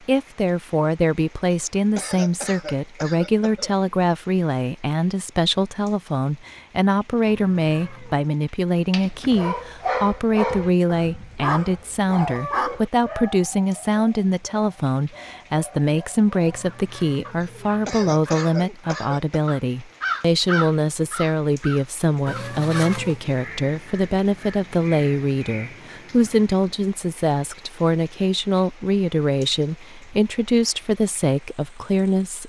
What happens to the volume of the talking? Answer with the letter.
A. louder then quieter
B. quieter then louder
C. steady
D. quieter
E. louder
C.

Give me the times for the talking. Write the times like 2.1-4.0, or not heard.
0.1-32.4.